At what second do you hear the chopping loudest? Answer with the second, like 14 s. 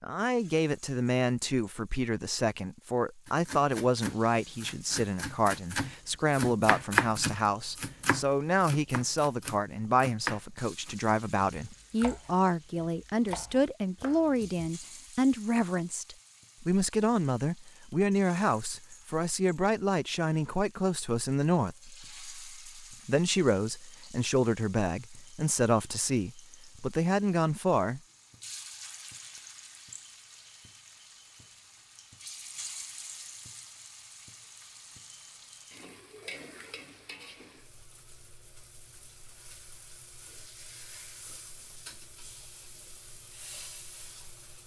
7 s.